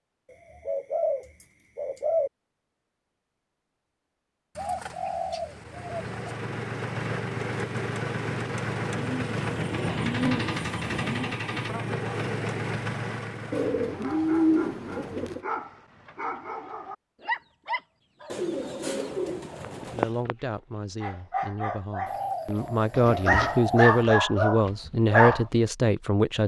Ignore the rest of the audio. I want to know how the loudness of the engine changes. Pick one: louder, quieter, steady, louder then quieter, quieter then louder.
steady.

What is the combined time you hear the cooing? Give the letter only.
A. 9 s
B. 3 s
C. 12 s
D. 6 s
C.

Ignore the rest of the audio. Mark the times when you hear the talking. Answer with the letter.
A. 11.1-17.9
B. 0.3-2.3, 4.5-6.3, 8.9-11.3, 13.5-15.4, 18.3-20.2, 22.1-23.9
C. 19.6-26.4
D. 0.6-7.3
C.